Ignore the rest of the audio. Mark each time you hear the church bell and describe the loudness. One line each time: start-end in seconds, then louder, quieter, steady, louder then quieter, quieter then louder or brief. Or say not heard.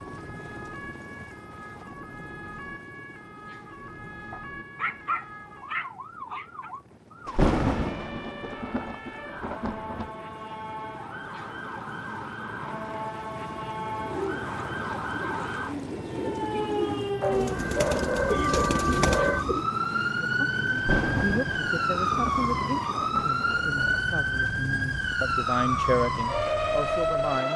not heard.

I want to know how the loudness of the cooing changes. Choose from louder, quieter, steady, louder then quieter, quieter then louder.
louder.